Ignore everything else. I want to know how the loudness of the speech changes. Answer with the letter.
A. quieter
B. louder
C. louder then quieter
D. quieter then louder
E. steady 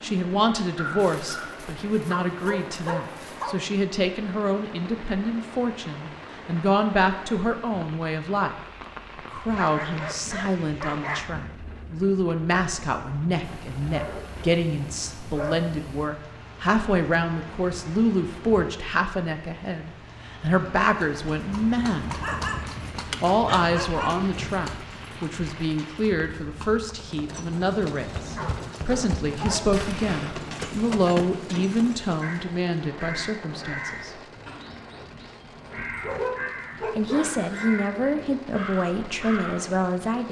E.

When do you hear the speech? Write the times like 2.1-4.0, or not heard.
0.0-8.6, 9.2-22.2, 23.2-34.2, 37.0-40.2.